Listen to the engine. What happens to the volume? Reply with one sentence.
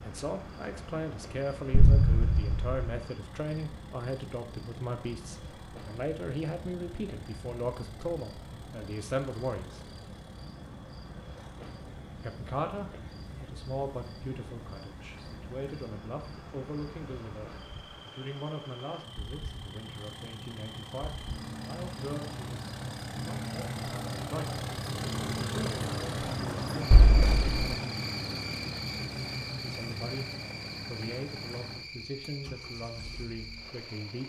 The loudness of the engine goes up.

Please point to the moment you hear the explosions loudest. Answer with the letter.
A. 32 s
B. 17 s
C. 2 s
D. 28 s
C.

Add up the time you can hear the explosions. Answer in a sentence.
You can hear the explosions for 2 seconds altogether.